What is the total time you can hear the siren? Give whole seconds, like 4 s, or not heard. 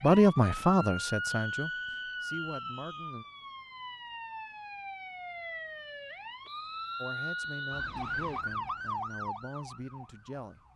11 s.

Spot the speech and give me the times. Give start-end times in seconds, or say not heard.
0.0-3.2, 7.0-10.7.